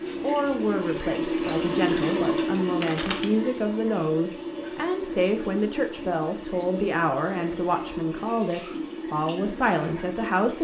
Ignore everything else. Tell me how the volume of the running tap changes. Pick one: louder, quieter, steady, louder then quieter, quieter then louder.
quieter.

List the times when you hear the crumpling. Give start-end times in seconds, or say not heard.
2.8-3.4.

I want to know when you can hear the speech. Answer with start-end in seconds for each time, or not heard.
0.1-10.5.